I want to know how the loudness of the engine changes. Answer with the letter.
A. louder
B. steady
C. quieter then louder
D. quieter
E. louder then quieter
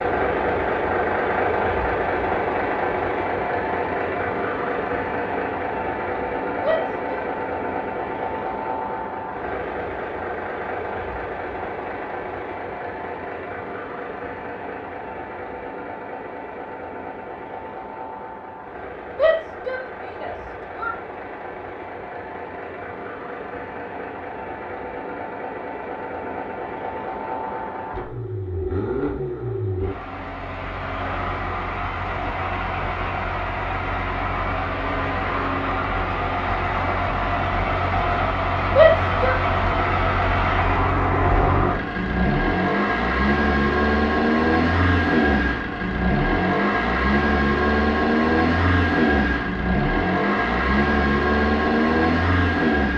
C.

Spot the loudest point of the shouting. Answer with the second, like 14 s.
39 s.